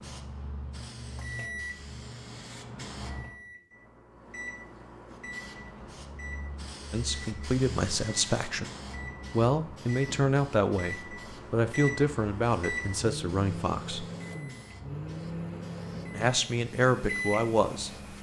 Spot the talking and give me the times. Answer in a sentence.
The talking can be heard from 6.9 to 8.7 s, from 9.3 to 14.1 s and from 16.1 to 17.9 s.